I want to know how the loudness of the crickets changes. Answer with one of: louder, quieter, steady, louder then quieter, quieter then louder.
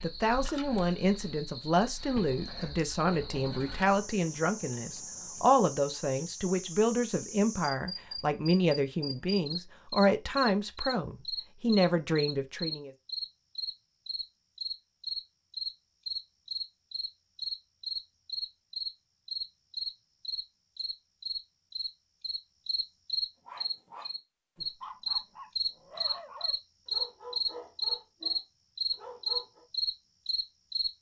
louder.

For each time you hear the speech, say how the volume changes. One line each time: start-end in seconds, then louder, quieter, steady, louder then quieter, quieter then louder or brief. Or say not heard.
0.0-12.9 steady.